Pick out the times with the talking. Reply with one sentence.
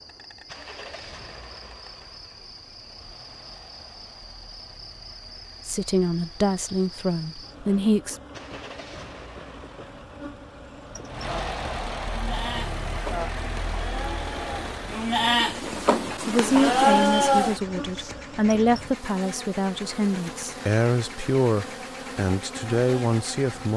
The talking can be heard from 5.7 to 8.2 s and from 16.2 to 23.7 s.